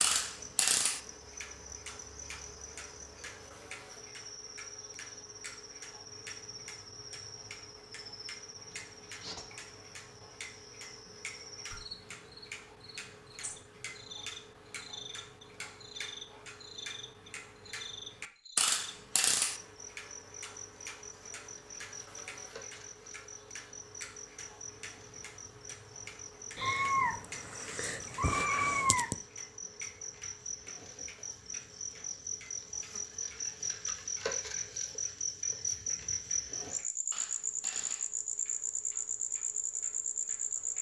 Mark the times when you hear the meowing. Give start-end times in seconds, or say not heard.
26.6-29.1.